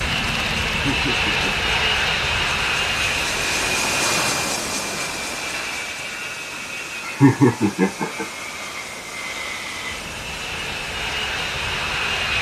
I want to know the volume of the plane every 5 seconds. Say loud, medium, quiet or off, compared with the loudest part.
loud, medium, loud.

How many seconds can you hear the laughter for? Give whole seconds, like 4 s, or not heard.
2 s.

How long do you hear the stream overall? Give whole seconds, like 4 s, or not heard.
12 s.